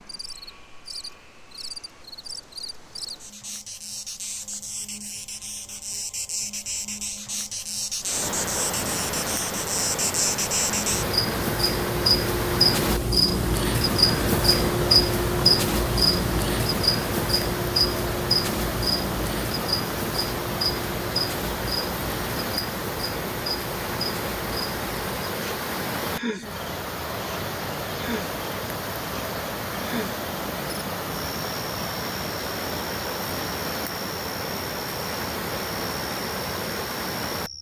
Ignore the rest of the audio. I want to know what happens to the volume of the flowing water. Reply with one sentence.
The loudness of the flowing water stays about the same.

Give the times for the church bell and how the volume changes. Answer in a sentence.
You can't hear the church bell here.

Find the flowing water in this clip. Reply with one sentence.
You can hear the flowing water from 8.0 to 37.5 s.